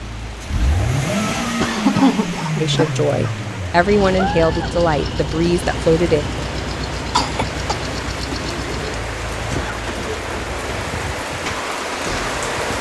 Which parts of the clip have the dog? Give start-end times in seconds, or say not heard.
not heard.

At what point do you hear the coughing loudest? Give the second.
2 s.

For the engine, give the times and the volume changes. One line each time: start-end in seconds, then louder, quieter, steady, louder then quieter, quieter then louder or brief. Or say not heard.
0.0-12.7 quieter.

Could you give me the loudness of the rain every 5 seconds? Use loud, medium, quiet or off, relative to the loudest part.
medium, loud, loud.